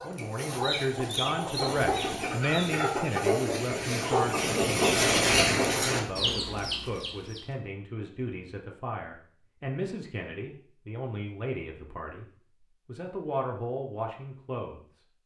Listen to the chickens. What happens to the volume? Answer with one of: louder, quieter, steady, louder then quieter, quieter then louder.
louder then quieter.